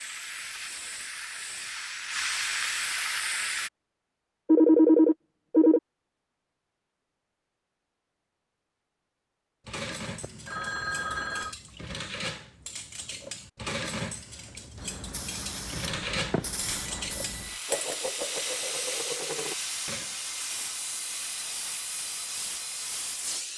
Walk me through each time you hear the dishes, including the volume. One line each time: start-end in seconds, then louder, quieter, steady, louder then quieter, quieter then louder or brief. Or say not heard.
9.7-20.1 louder.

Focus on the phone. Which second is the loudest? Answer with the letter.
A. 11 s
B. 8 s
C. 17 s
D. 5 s
D.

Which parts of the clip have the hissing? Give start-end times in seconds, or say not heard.
0.0-3.7, 14.8-23.5.